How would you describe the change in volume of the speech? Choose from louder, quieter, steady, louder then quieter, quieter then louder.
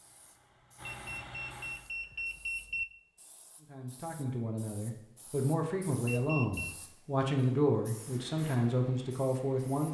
louder.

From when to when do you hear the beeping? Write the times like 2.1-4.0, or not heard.
0.8-2.9, 6.0-6.8.